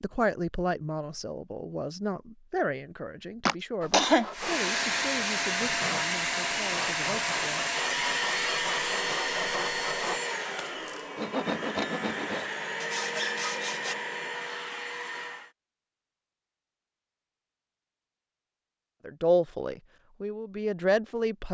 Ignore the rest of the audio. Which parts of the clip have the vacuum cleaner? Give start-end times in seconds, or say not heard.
4.3-15.5.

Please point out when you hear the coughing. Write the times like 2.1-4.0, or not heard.
3.5-4.2.